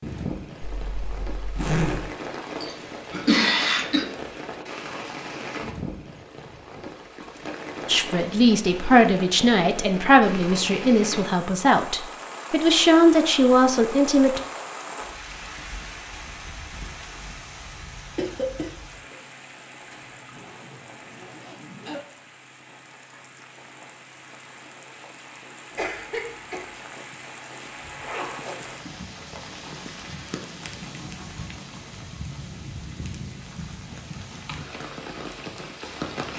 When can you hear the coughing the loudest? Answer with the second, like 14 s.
3 s.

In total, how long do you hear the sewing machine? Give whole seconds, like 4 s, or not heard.
not heard.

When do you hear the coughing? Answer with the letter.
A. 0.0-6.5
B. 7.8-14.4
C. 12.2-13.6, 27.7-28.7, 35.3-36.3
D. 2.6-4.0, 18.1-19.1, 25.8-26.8
D.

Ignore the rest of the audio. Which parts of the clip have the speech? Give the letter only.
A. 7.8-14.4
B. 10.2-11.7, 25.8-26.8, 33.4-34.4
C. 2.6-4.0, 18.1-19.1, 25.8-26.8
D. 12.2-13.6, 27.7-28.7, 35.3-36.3
A.